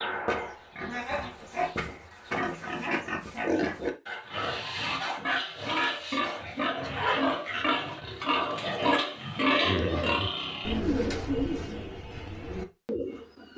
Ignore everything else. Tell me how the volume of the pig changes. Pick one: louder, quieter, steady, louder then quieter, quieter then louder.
louder.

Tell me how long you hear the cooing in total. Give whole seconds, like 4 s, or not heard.
4 s.